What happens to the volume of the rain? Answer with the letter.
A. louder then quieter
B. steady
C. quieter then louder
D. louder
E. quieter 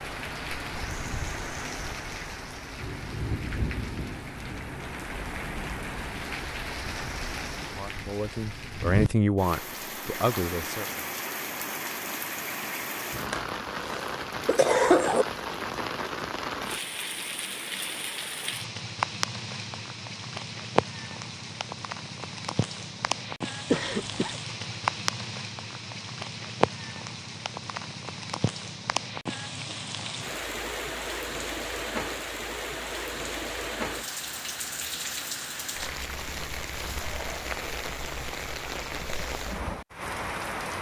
B.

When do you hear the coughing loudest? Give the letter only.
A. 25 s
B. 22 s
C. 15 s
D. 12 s
C.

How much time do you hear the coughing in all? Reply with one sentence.
The coughing can be heard for 3 seconds in total.